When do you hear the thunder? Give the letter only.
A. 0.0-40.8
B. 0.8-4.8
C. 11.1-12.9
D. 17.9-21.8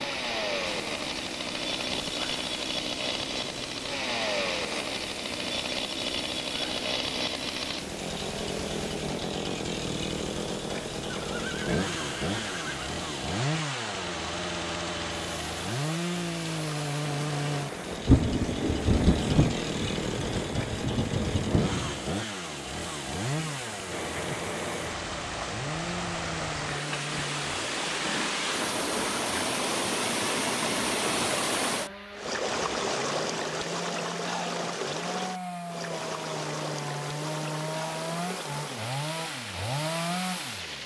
D.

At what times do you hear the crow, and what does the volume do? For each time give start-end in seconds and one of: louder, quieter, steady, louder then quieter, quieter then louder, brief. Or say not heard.
not heard.